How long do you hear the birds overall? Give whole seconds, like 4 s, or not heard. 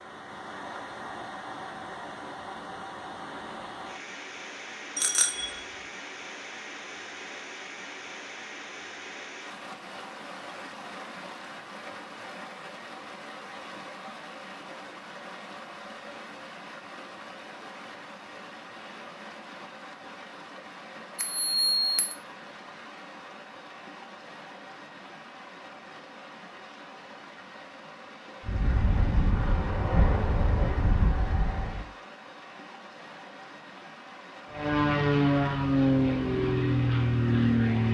not heard.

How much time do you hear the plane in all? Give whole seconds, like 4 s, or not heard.
7 s.